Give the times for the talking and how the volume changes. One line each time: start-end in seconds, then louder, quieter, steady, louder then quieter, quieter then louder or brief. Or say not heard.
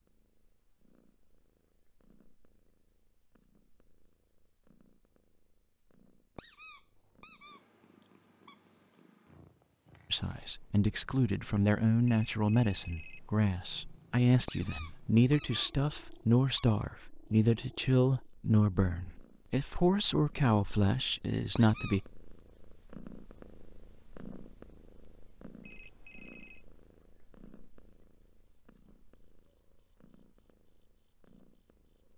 10.1-22.0 steady.